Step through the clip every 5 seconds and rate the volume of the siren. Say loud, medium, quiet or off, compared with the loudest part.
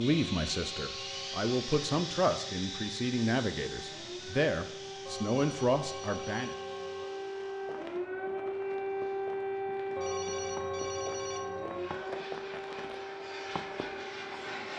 medium, loud, loud.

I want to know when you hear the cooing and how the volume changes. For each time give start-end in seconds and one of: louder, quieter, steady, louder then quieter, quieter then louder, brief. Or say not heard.
not heard.